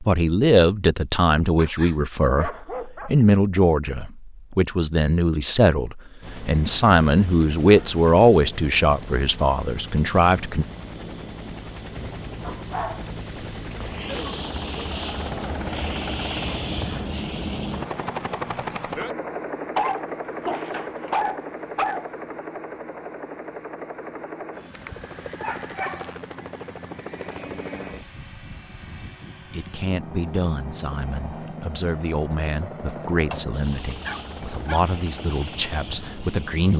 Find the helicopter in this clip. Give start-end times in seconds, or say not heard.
6.2-36.7.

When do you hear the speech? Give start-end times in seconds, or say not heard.
0.0-10.7, 29.4-36.7.